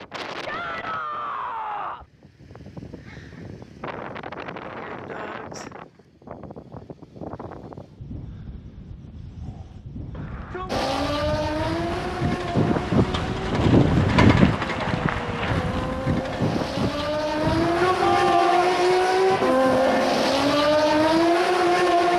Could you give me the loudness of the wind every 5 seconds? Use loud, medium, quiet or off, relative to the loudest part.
quiet, quiet, loud, medium, quiet.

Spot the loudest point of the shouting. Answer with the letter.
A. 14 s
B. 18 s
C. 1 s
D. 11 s
B.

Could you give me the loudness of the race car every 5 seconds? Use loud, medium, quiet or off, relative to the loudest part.
off, off, medium, loud, loud.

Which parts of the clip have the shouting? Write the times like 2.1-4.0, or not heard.
0.5-2.0, 10.2-11.0, 17.4-18.7.